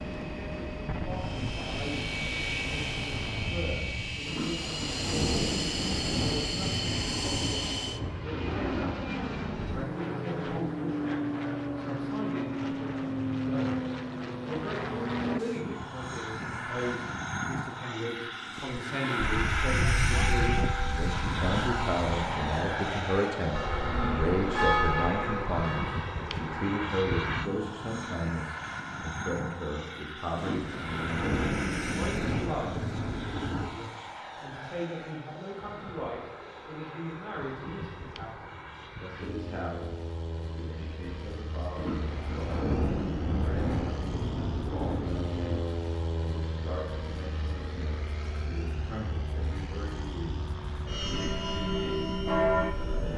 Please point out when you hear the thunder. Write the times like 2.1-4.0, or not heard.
4.2-8.1, 30.4-33.7, 41.8-45.6.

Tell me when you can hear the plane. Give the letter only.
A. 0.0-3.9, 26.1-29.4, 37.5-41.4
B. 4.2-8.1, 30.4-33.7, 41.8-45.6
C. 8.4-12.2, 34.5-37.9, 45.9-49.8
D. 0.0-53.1
D.